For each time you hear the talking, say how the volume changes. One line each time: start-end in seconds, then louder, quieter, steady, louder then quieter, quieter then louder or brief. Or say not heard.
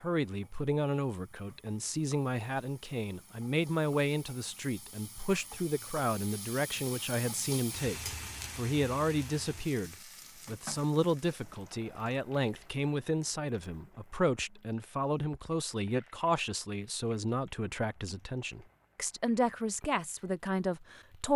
0.0-21.3 steady.